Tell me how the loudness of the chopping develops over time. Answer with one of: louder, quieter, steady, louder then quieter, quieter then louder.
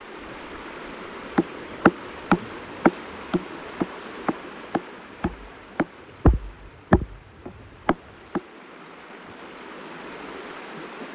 quieter then louder.